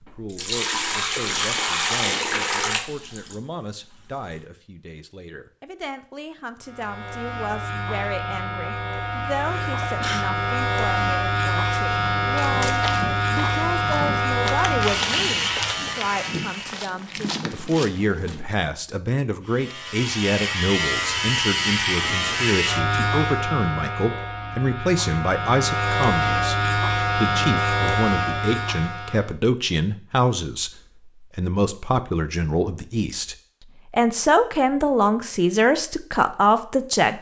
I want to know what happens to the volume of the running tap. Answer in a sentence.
The loudness of the running tap goes down.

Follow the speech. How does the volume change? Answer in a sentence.
The loudness of the speech goes up.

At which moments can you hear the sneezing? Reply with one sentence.
The sneezing can be heard from 9.4 to 10.2 s.